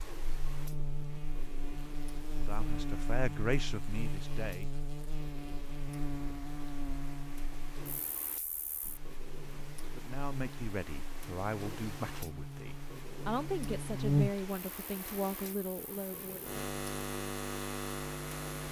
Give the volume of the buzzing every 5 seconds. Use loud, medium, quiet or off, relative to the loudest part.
medium, medium, loud, loud.